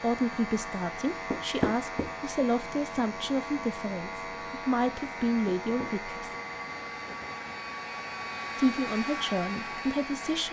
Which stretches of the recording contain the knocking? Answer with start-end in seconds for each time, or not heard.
1.3-2.1, 5.5-6.2.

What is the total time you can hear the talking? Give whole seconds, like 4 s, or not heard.
8 s.